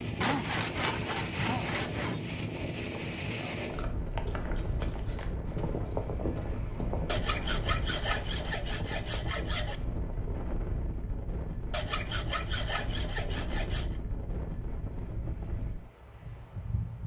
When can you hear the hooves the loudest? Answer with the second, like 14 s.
6 s.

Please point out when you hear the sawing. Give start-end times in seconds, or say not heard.
0.2-2.2, 7.0-9.8, 11.7-14.0.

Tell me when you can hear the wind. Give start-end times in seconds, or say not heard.
0.0-17.0.